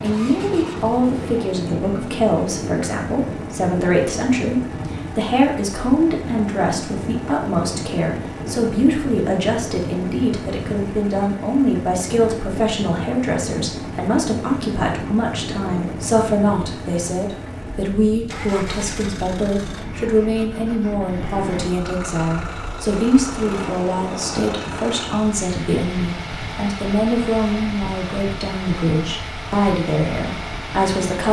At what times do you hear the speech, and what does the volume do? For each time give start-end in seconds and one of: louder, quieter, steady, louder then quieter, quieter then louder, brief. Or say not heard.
0.0-31.2 steady.